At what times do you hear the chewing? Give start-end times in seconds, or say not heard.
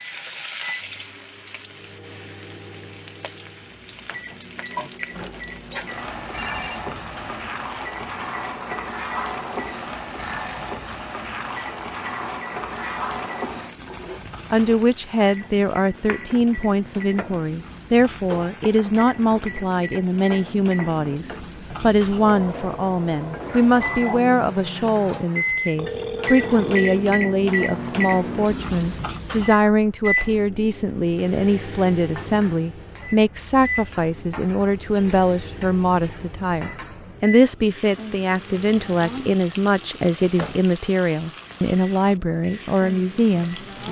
not heard.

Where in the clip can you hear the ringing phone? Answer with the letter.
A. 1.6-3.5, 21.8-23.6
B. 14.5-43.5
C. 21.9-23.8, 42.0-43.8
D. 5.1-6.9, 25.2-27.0
D.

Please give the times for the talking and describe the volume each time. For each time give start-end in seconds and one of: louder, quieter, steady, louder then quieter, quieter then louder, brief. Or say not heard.
14.5-43.5 steady.